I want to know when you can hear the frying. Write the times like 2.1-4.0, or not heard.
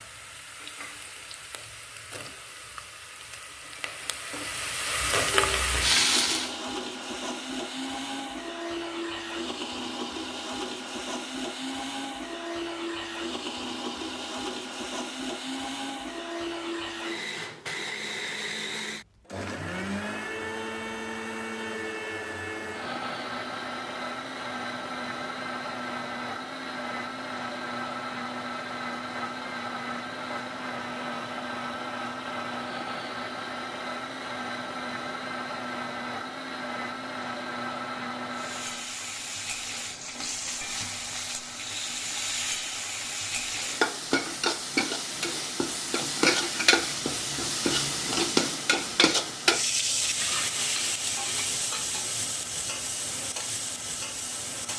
0.0-6.5, 38.3-54.7.